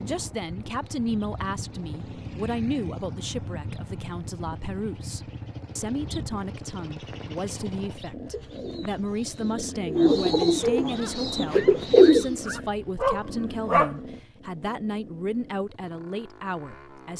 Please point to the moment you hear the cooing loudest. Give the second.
12 s.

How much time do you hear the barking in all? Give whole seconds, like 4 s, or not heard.
3 s.